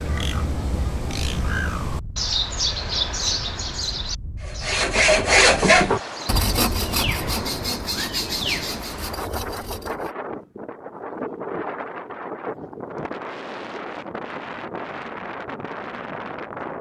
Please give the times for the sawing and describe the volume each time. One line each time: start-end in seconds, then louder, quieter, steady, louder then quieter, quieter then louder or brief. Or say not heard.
4.4-10.1 quieter.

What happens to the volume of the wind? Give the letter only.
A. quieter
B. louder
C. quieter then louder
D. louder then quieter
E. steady
B.